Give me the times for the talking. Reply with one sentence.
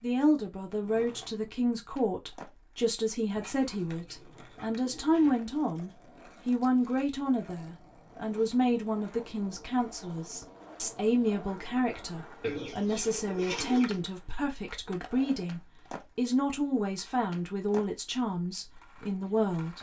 The talking can be heard from 0.0 to 19.7 s.